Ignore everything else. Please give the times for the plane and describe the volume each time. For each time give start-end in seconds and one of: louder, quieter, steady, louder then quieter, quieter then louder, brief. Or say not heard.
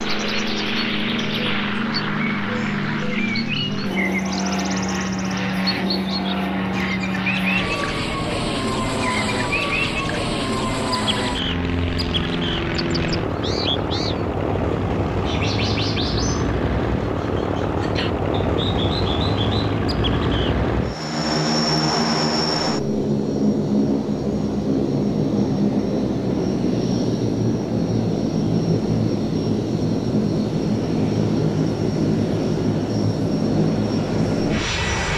0.0-35.1 steady.